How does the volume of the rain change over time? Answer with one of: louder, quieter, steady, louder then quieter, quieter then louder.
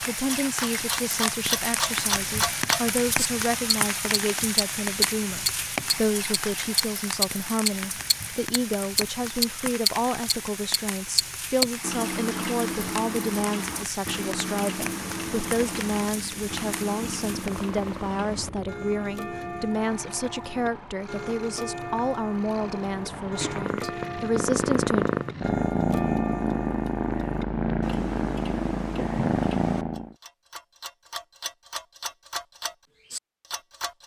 quieter.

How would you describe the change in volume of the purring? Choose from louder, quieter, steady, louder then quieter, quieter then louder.
louder.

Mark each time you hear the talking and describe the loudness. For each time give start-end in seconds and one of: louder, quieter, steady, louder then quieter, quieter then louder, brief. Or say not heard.
0.0-25.1 steady.